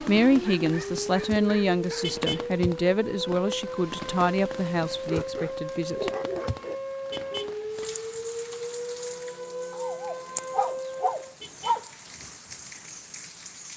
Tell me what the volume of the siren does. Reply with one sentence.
The volume of the siren stays about the same.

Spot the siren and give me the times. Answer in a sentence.
You can hear the siren from 0.0 to 11.3 s.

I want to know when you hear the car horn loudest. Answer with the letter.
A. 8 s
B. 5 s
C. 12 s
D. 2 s
D.